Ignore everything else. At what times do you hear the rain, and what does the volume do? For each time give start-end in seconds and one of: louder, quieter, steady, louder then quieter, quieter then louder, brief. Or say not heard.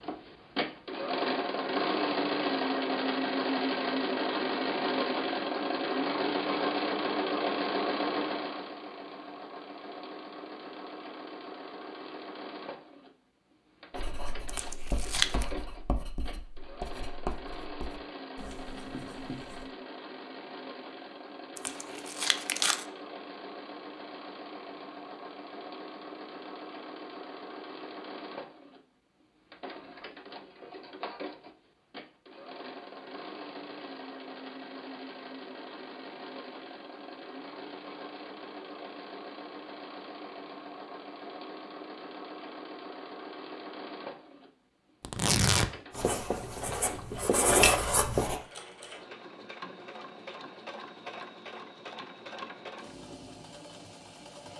not heard.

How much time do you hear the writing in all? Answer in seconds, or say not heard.
8 s.